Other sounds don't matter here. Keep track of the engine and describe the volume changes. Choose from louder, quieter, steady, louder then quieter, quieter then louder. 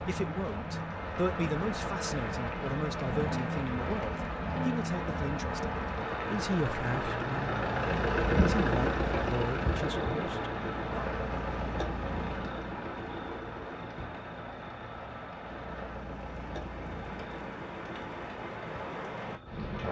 louder then quieter.